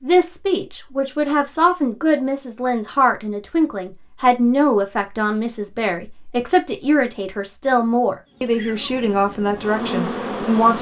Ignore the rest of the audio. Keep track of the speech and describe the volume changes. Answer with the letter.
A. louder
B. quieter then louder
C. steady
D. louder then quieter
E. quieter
C.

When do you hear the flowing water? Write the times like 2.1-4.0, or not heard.
not heard.